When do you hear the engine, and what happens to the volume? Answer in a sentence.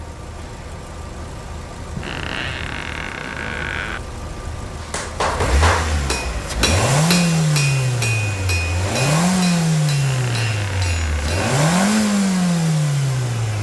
You can hear the engine from 0.0 to 13.5 s, getting louder.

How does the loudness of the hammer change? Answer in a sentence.
The volume of the hammer goes down.